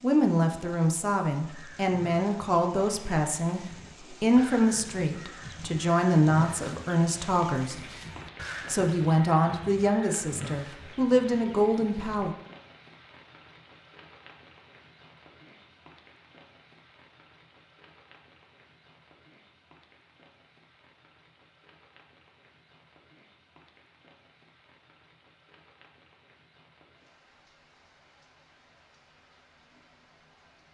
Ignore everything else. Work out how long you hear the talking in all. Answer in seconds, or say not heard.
11 s.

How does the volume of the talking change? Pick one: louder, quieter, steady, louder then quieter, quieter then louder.
steady.